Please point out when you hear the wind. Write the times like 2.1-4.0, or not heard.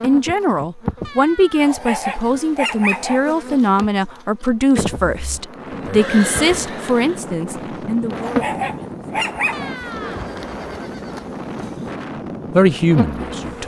5.2-13.6.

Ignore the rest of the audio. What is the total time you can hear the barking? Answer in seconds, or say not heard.
3 s.